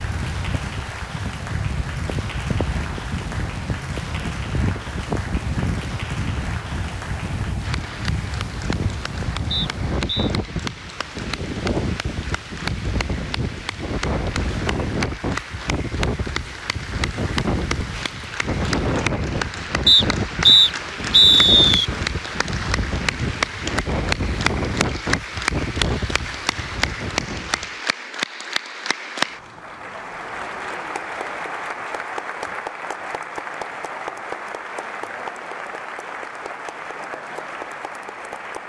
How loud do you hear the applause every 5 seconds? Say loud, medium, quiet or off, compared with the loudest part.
medium, medium, medium, loud, loud, loud, loud, medium.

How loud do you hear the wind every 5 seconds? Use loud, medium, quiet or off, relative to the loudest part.
loud, loud, loud, loud, loud, loud, off, off.